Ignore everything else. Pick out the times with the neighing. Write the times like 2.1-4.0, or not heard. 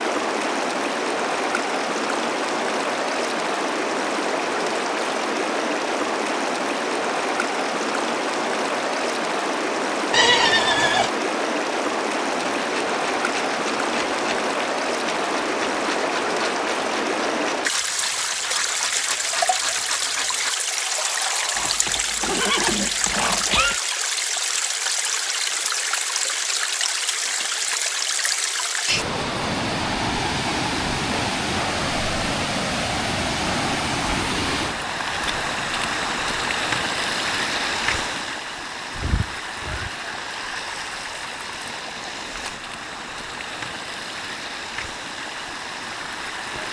10.1-11.1, 21.6-23.8, 39.0-39.9.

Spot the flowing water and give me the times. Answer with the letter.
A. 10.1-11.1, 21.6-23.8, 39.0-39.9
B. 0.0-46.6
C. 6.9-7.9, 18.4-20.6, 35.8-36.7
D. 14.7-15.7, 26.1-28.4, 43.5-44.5
B.